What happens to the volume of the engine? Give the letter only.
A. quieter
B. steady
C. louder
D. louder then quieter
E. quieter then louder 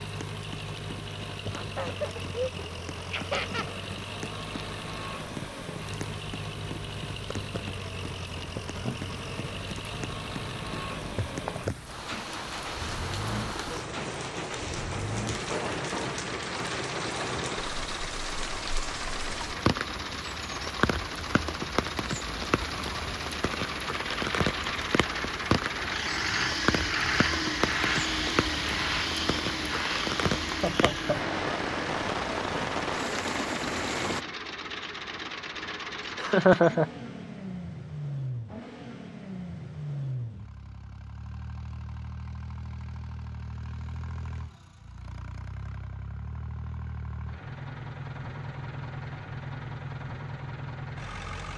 D.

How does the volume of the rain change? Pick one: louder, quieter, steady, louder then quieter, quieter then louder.
louder.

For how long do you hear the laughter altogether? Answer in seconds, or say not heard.
4 s.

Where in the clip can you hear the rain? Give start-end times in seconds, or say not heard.
0.0-34.2.